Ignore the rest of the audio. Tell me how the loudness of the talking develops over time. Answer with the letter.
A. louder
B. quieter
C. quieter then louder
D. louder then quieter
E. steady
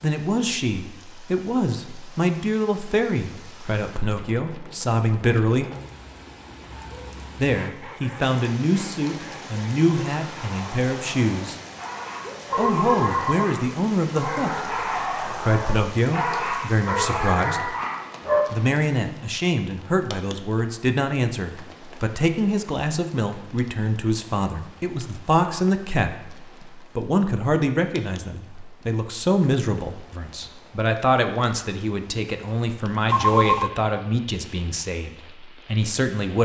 E.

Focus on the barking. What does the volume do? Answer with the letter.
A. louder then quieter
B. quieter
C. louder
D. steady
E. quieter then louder
C.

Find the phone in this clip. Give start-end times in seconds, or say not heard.
12.5-13.5, 33.1-33.7.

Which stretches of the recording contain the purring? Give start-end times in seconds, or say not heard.
not heard.